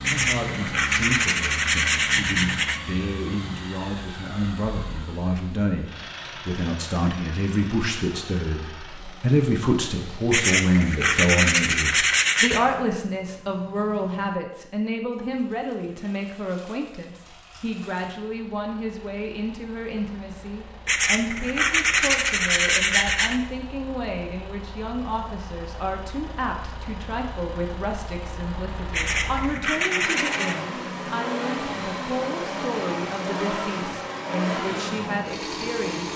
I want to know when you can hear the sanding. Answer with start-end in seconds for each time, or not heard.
0.0-2.8, 10.3-12.6, 20.9-23.4, 28.9-30.6.